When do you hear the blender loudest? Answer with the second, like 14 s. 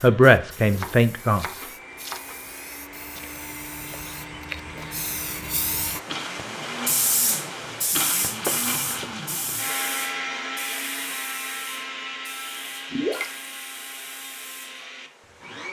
10 s.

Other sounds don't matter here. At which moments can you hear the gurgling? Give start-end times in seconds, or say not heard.
12.9-13.4.